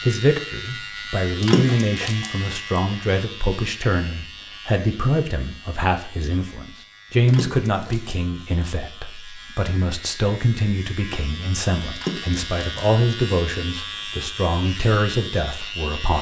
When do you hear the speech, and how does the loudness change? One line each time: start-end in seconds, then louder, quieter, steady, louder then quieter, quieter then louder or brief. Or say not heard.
0.1-16.1 steady.